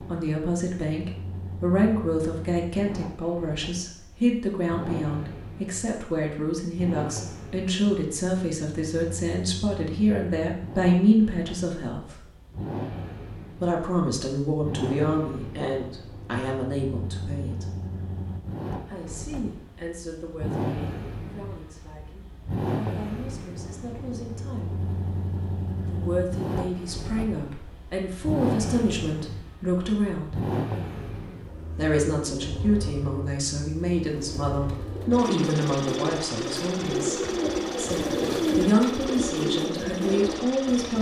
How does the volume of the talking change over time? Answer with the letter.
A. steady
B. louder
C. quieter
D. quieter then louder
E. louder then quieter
D.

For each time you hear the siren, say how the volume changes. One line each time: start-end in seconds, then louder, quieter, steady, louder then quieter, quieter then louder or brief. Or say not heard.
not heard.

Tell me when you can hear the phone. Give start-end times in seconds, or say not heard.
not heard.